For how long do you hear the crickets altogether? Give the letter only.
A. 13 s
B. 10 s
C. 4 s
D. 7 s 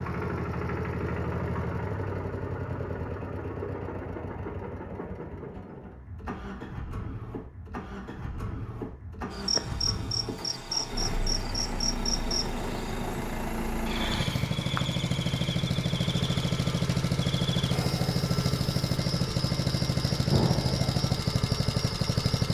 A.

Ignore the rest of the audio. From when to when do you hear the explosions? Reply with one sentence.
The explosions can be heard from 20.3 to 21.0 s.